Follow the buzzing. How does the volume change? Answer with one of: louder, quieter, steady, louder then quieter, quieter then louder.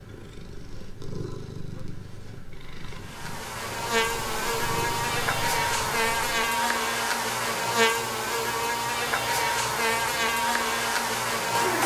steady.